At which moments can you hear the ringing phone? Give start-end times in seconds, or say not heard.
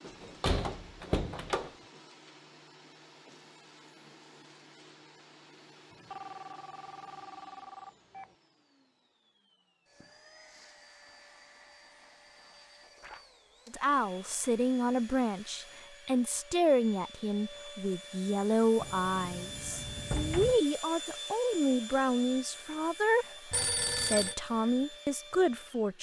5.9-8.3, 23.5-24.4.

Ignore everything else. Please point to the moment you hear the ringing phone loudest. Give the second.
24 s.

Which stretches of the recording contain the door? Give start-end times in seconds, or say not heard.
0.1-1.7, 18.8-20.6.